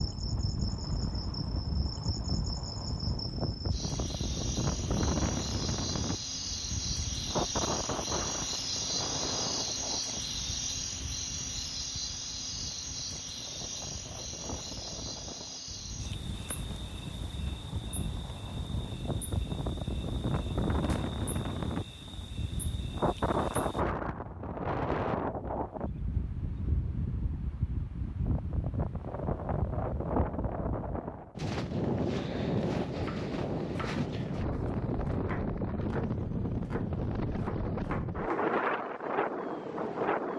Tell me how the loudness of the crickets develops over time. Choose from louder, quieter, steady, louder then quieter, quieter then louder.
louder then quieter.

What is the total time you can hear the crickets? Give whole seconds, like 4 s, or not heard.
24 s.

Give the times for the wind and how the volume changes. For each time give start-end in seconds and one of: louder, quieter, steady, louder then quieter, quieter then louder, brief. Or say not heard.
0.0-40.3 quieter then louder.